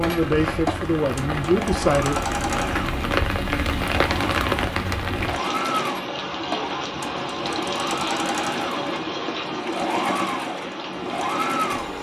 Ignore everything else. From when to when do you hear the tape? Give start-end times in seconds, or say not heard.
not heard.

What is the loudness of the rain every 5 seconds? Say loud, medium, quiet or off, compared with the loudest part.
loud, loud, medium.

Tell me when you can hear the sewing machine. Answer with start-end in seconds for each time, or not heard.
0.0-11.9.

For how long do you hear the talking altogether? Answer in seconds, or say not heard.
2 s.